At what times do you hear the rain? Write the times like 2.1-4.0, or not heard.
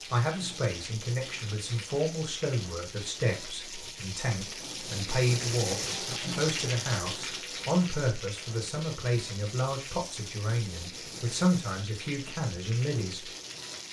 0.0-13.8.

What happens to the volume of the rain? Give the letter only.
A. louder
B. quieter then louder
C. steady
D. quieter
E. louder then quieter
E.